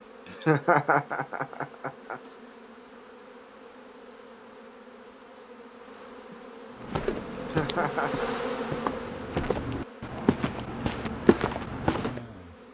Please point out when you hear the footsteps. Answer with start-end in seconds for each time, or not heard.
6.8-12.2.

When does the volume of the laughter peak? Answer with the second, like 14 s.
1 s.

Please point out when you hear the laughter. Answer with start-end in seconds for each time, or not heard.
0.2-2.2, 7.3-8.3.